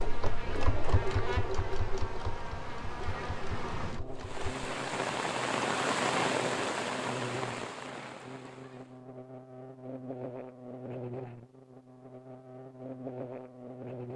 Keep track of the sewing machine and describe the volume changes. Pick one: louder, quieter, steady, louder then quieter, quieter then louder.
quieter.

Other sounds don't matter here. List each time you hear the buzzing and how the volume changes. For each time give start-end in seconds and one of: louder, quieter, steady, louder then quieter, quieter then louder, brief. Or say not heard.
0.0-14.1 steady.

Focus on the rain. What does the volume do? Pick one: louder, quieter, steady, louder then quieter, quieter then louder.
louder then quieter.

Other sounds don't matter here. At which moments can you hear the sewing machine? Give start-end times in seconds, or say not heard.
0.0-4.5.